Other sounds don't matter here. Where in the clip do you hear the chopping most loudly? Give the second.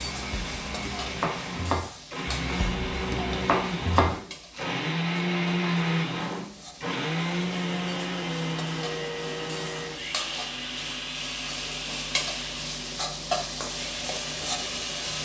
4 s.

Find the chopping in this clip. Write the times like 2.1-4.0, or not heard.
0.0-4.7.